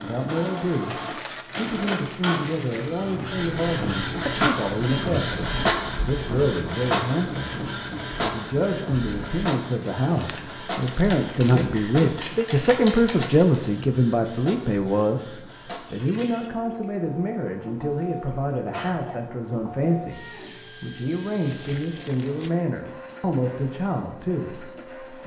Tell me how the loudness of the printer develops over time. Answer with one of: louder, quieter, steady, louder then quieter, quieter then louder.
quieter.